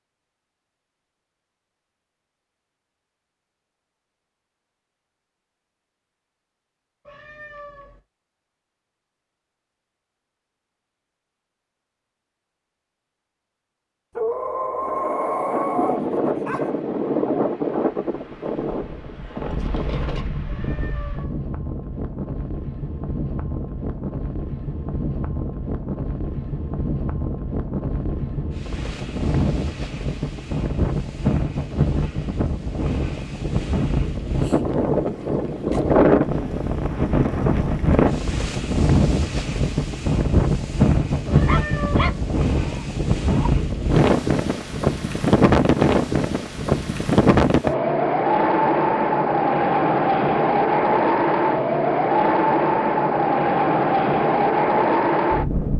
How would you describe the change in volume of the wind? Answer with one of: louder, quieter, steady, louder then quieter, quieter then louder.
louder.